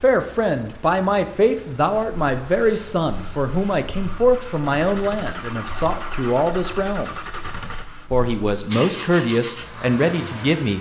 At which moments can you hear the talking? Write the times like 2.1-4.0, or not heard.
0.0-7.2, 8.1-10.7.